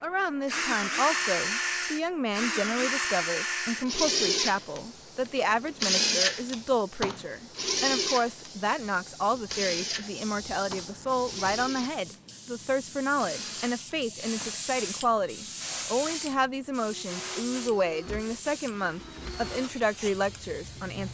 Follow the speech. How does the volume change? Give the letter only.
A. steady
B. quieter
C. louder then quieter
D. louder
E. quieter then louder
A.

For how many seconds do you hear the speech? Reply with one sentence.
You can hear the speech for 21 seconds altogether.